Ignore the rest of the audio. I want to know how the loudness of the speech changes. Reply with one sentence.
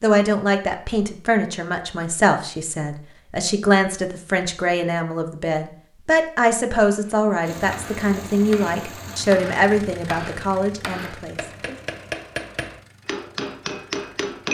The volume of the speech stays about the same.